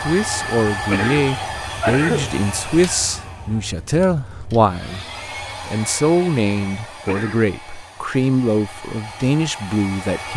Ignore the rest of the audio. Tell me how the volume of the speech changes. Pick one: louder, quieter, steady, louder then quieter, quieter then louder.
steady.